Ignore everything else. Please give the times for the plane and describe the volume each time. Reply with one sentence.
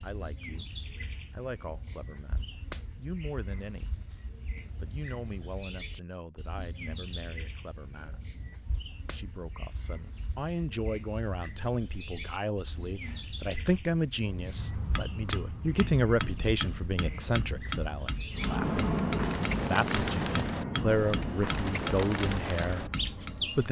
You can hear the plane from 18.3 to 23.6 s, getting quieter.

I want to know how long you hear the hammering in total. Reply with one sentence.
You can hear the hammering for 9 seconds altogether.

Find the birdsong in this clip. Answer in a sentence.
You can hear the birdsong from 0.0 to 23.6 s.